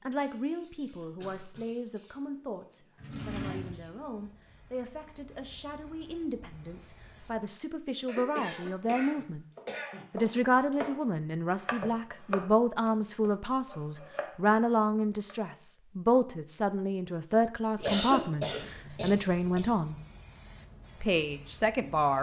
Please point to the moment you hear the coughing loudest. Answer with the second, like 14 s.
18 s.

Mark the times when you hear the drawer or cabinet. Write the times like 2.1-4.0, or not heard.
3.0-3.9.